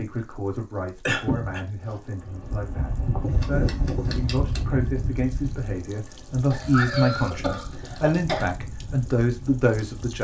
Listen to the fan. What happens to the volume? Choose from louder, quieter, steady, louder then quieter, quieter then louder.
quieter.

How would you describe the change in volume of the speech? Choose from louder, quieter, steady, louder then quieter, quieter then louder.
louder.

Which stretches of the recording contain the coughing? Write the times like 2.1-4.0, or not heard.
1.1-1.6, 6.5-8.4.